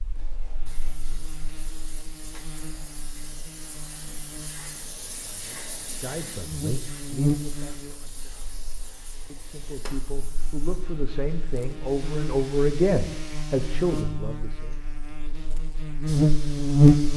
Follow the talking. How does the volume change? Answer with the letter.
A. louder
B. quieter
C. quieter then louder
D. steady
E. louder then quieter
A.